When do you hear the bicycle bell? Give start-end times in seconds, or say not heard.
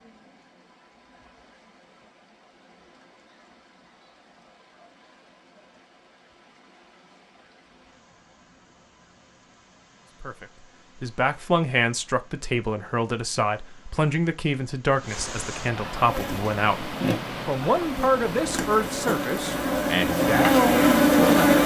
not heard.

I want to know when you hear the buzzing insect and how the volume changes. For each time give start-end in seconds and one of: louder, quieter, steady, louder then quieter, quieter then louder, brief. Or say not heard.
15.9-21.6 quieter then louder.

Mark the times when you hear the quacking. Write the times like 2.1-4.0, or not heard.
not heard.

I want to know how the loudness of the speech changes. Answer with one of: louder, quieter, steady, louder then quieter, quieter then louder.
steady.